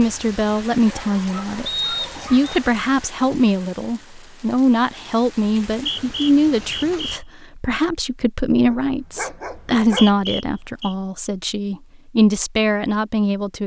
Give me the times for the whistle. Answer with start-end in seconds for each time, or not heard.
1.6-2.6, 5.6-7.2, 9.6-10.9.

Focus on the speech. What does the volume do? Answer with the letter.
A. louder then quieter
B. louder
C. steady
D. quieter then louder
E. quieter
C.